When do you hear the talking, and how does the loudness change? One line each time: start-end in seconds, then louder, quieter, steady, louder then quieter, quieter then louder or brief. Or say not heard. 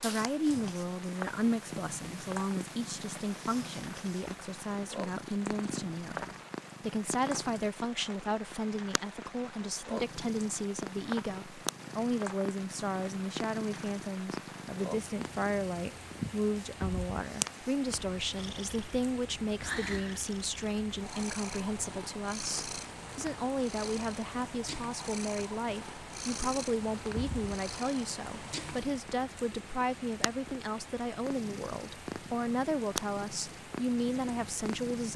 0.0-35.1 steady.